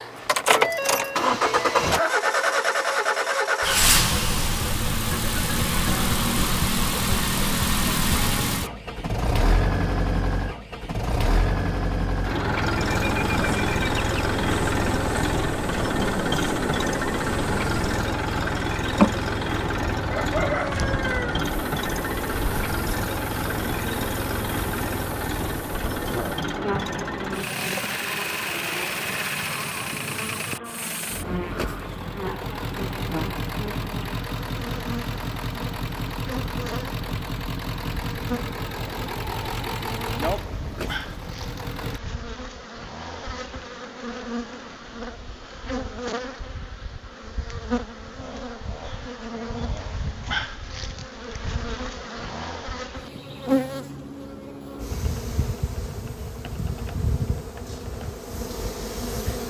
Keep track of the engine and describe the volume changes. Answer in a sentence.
The volume of the engine goes down.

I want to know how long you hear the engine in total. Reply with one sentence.
You can hear the engine for 42 seconds altogether.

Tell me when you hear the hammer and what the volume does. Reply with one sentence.
You can't hear the hammer here.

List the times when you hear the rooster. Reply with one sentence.
You can hear the rooster from 20.1 to 21.4 s.